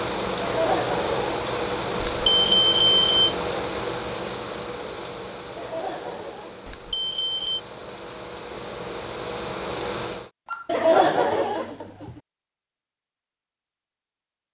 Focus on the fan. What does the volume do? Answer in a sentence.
The volume of the fan goes down, then up.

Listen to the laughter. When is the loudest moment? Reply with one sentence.
The loudest moment of the laughter is at 11 seconds.